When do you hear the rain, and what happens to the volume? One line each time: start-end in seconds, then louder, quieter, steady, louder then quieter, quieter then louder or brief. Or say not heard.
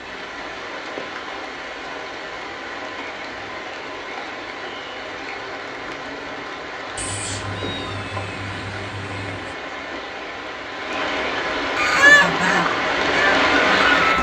0.0-14.1 louder.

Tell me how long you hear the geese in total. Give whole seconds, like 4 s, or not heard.
2 s.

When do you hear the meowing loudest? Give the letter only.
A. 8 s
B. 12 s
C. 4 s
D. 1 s
A.